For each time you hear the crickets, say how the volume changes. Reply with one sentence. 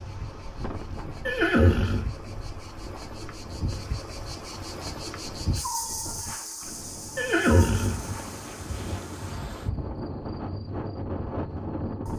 You can hear the crickets from 0.0 to 12.1 s, getting louder then quieter.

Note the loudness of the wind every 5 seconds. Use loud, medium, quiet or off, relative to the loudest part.
medium, medium, loud.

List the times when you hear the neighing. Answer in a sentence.
The neighing can be heard from 1.2 to 2.1 s and from 7.2 to 9.0 s.